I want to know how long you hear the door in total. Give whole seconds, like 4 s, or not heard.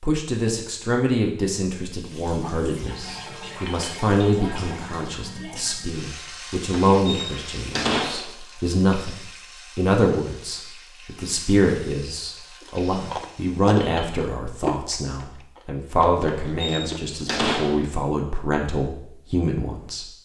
3 s.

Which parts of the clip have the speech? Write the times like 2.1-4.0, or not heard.
0.0-20.2.